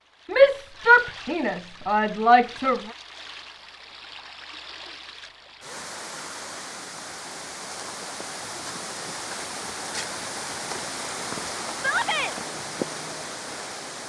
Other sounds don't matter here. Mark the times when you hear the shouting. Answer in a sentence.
You can hear the shouting from 0.3 to 2.8 s and from 11.8 to 12.3 s.